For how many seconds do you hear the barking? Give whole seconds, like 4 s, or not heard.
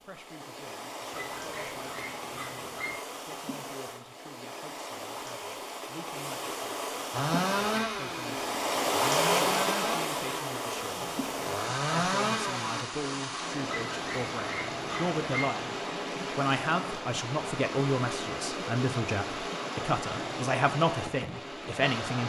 4 s.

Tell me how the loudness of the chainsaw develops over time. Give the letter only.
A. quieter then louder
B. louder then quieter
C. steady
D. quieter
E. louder
A.